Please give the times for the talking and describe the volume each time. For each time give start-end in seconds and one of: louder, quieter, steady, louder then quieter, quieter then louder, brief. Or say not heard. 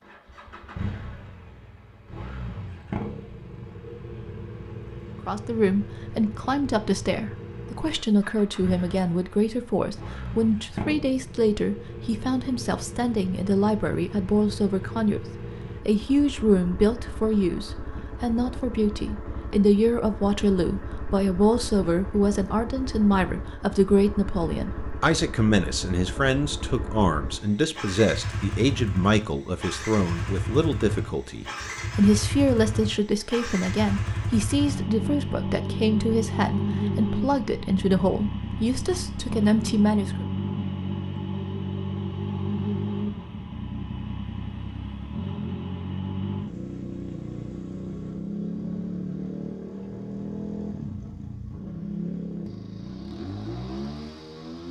5.2-40.2 steady.